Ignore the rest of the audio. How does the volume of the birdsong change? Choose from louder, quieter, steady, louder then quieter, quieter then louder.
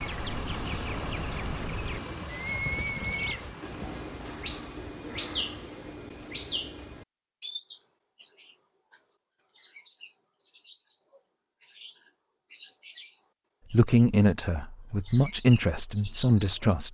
quieter then louder.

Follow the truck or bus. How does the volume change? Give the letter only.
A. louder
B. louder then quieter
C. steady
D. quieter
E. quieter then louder
D.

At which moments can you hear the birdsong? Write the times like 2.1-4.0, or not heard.
0.0-16.5.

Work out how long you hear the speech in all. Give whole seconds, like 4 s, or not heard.
3 s.